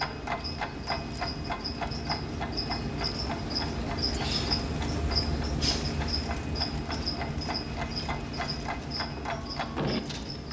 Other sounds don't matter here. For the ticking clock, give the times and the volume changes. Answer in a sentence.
The ticking clock can be heard from 0.0 to 10.3 s, getting quieter then louder.